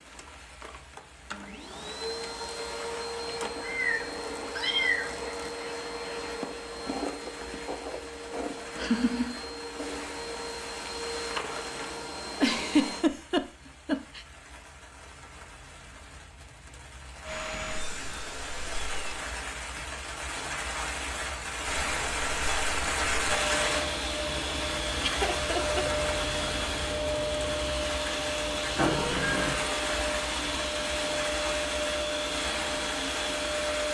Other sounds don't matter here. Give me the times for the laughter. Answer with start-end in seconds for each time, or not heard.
8.8-9.4, 12.4-14.2, 24.6-25.9.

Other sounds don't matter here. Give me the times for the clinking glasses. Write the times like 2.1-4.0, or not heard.
not heard.